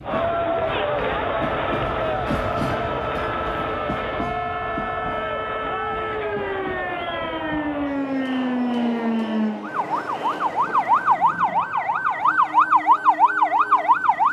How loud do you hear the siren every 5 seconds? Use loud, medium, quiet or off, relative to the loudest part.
quiet, medium, loud.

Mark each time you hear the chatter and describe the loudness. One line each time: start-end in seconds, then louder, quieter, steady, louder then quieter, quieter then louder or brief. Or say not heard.
0.0-10.7 quieter.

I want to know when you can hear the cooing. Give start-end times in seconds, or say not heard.
not heard.